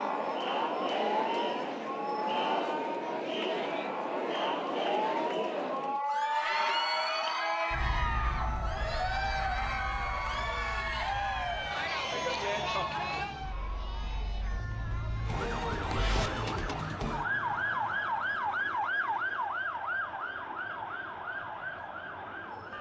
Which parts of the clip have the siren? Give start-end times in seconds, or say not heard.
0.0-22.7.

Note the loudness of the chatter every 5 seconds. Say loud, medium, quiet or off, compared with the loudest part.
loud, loud, loud, quiet, quiet.